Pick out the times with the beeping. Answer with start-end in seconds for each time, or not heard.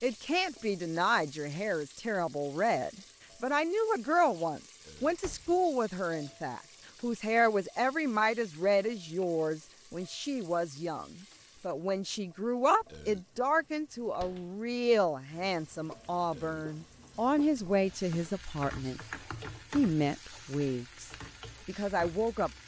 not heard.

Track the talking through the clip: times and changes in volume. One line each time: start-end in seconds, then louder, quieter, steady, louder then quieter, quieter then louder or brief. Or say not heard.
0.0-19.0 steady
19.7-22.5 brief.